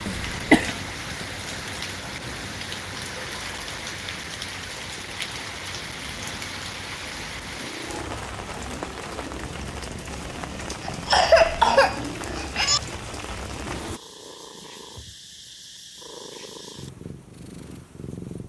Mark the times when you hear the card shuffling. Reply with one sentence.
The card shuffling can't be heard in this clip.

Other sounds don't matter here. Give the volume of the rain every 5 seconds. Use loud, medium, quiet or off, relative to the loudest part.
loud, loud, loud, off.